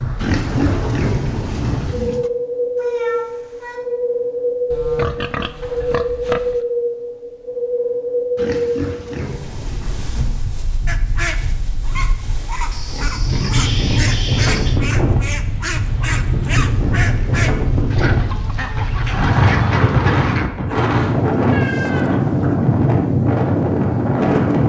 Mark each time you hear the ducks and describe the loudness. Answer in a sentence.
The ducks can be heard from 10.8 to 20.5 s, at a steady volume.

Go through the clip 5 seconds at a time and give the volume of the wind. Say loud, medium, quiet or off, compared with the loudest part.
medium, medium, medium, loud, loud.